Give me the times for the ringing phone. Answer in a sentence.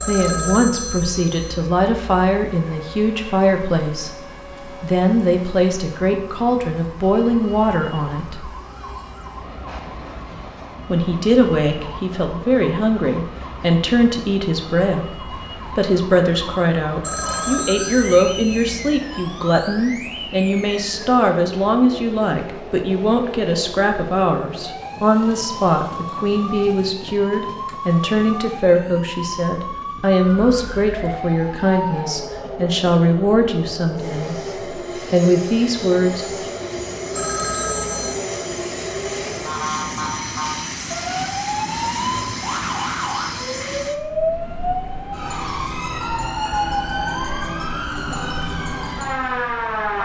You can hear the ringing phone from 0.0 to 1.7 s, from 17.0 to 19.1 s and from 37.1 to 38.2 s.